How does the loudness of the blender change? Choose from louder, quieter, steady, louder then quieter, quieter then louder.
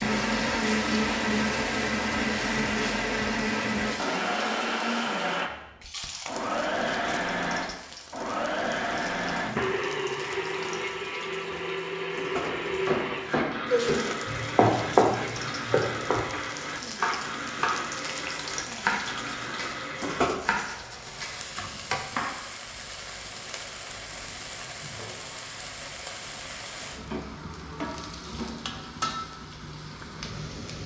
quieter.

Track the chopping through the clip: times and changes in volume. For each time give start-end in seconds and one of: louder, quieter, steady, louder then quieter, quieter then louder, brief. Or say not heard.
12.4-22.4 quieter.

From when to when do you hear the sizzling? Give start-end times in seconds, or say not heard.
0.0-30.8.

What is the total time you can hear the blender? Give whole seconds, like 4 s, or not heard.
20 s.